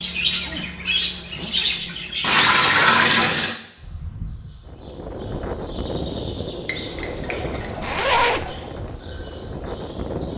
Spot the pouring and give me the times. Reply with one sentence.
You can hear the pouring from 2.2 to 3.5 s and from 6.7 to 8.7 s.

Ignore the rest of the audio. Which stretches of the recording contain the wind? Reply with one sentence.
You can hear the wind from 4.7 to 10.3 s.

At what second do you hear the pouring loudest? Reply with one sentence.
The volume of the pouring peaks at 3 seconds.